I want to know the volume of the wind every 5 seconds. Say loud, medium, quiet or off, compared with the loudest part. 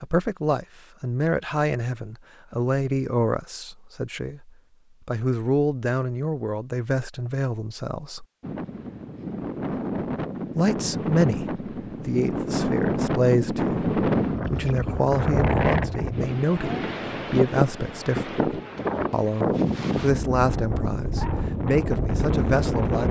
off, medium, loud, loud, loud.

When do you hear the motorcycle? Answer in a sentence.
The motorcycle can't be heard in this clip.